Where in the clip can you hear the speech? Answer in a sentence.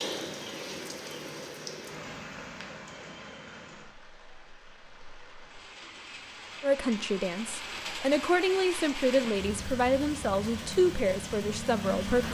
The speech can be heard from 6.6 to 12.2 s.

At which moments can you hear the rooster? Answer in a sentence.
The rooster can't be heard in this clip.